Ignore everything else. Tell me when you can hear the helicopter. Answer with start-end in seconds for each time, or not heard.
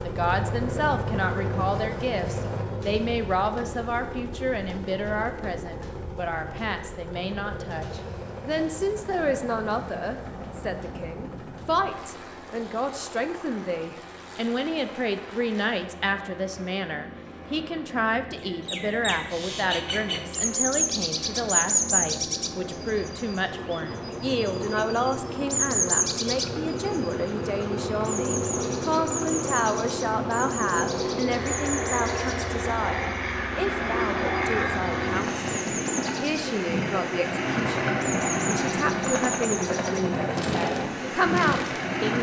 0.0-42.1.